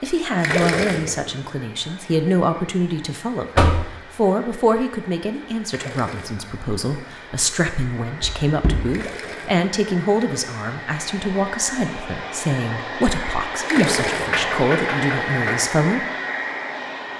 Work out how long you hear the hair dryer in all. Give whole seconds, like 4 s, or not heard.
17 s.